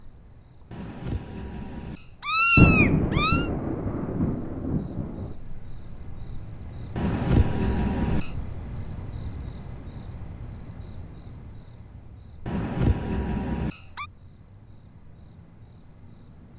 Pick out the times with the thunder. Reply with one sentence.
The thunder can be heard from 2.5 to 5.3 s.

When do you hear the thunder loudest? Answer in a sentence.
The loudest moment of the thunder is at 3 seconds.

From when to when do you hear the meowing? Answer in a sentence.
The meowing can be heard from 0.7 to 3.5 s, from 7.0 to 8.3 s and from 12.4 to 14.1 s.